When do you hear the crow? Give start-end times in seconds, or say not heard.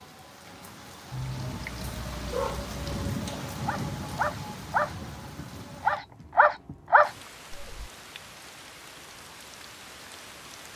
not heard.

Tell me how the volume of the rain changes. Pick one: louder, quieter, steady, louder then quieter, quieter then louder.
louder then quieter.